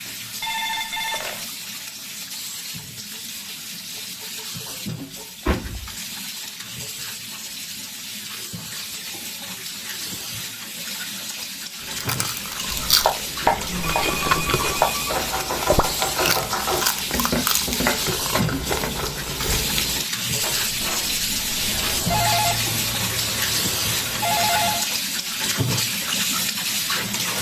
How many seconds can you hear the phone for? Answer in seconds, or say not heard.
5 s.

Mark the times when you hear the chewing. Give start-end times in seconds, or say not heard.
11.8-20.1.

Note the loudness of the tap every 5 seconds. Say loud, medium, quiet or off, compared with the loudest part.
medium, medium, medium, loud, loud, loud.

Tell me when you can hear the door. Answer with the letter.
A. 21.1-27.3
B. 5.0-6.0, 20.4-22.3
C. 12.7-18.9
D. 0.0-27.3
B.